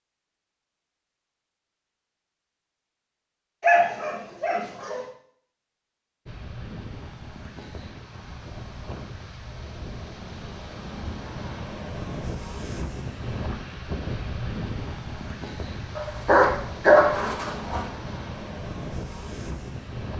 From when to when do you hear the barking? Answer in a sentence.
The barking can be heard from 3.6 to 5.0 s and from 15.9 to 17.9 s.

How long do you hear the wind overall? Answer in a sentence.
The wind can be heard for 14 seconds in total.